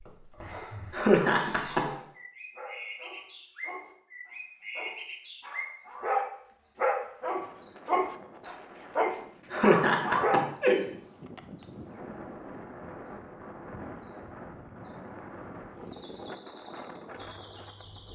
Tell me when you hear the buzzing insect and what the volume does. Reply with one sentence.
You can't hear the buzzing insect here.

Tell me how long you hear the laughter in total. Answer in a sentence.
The laughter can be heard for 2 seconds in total.